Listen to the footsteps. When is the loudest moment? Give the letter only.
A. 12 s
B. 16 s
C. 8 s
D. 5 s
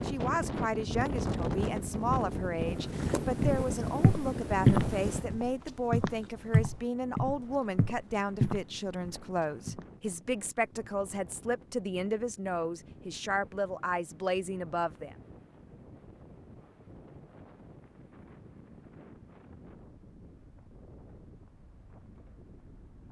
D.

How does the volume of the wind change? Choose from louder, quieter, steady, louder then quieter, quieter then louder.
quieter.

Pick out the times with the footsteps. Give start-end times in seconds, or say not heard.
3.0-9.8.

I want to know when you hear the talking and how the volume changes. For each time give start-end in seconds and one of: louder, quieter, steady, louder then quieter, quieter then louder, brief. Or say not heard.
0.1-15.2 steady.